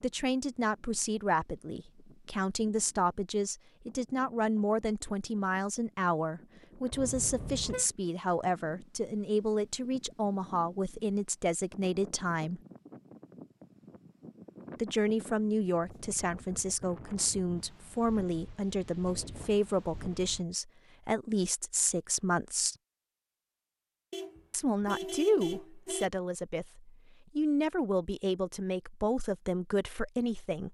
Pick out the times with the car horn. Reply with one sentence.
The car horn can be heard from 6.9 to 7.8 s and from 24.1 to 26.1 s.